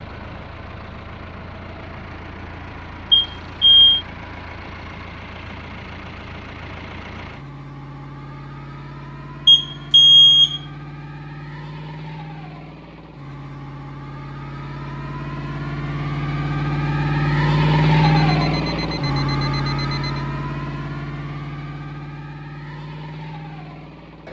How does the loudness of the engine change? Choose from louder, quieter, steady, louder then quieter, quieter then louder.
louder then quieter.